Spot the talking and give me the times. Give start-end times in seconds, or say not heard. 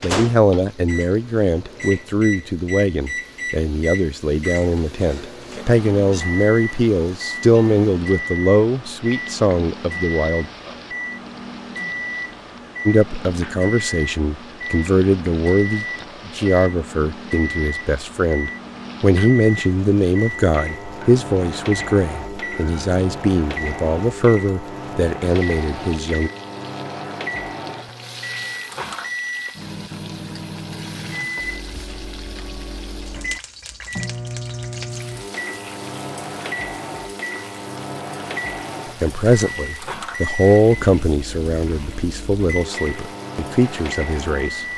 0.0-10.4, 12.8-26.3, 39.0-44.6.